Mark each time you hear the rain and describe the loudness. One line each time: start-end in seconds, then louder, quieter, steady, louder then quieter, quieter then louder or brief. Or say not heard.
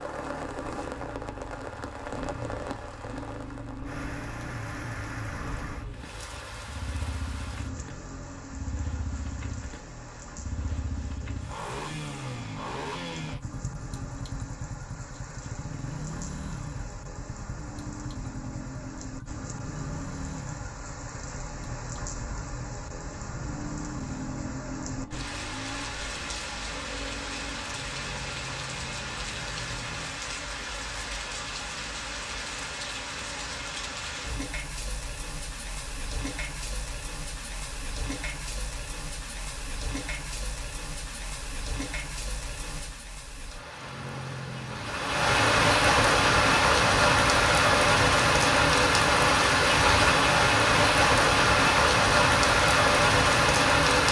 0.0-54.0 louder.